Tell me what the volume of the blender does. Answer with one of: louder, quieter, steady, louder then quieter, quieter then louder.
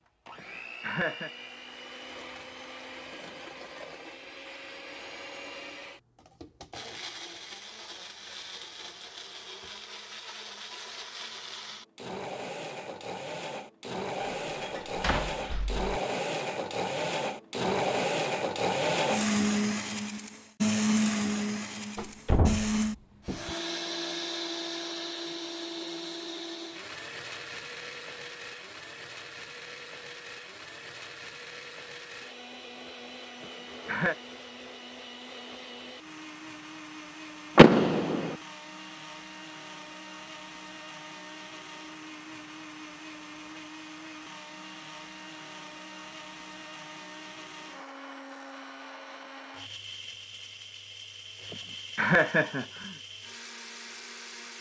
louder then quieter.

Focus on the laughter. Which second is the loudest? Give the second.
52 s.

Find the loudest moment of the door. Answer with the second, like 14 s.
38 s.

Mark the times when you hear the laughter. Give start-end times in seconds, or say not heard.
0.3-1.3, 33.4-34.1, 51.5-53.0.